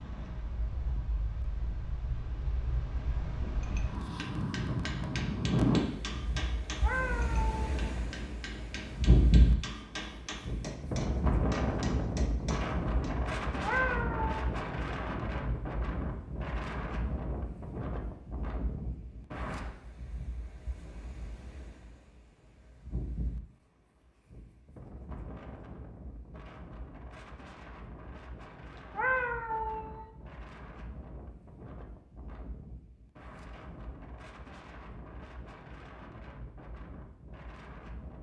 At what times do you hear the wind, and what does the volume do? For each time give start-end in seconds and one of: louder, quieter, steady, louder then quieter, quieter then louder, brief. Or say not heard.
0.0-38.1 quieter.